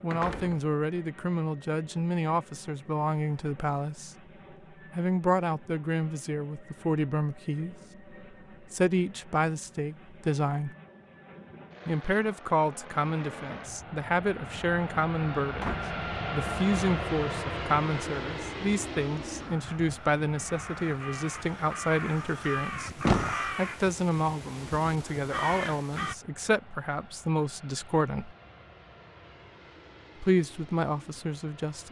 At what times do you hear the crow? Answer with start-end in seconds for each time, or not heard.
19.4-26.1.